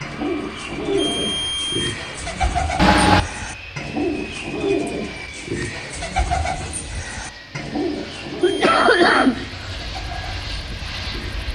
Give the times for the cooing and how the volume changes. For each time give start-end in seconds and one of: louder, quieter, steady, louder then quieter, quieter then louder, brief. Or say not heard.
0.0-11.5 quieter.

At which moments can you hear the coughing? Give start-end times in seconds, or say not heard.
2.8-3.2, 8.0-9.7.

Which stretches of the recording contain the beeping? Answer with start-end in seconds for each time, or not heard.
0.9-1.9, 8.4-9.2.